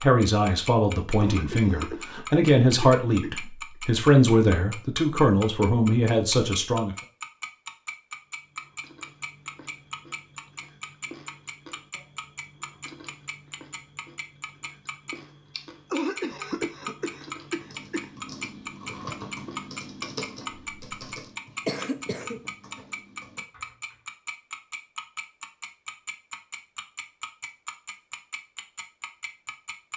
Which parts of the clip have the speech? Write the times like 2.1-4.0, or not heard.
0.0-7.0.